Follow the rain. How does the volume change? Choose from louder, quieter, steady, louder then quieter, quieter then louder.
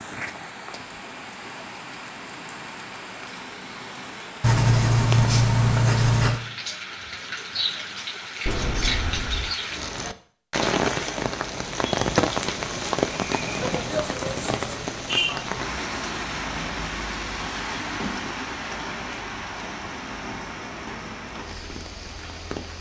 louder then quieter.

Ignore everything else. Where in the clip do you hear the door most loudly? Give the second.
9 s.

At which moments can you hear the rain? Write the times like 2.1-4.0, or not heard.
0.0-22.7.